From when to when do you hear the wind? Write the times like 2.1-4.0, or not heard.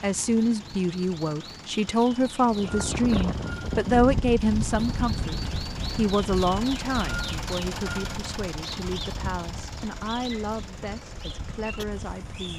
2.4-12.5.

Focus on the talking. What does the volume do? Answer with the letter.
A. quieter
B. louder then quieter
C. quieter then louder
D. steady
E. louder
A.